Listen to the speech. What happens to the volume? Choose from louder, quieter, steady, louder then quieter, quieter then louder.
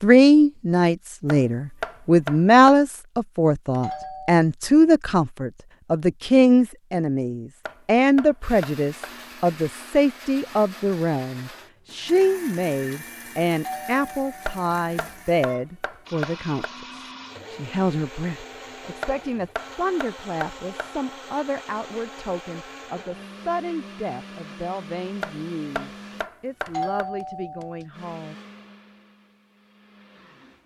quieter.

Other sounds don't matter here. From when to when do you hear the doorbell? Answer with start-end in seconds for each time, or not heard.
3.8-4.4, 13.6-15.2, 26.6-27.9.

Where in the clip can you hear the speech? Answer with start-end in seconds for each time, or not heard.
0.0-28.4.